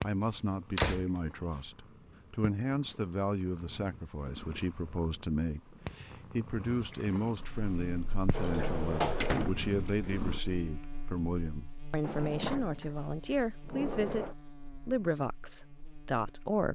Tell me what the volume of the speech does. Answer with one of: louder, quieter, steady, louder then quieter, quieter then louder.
steady.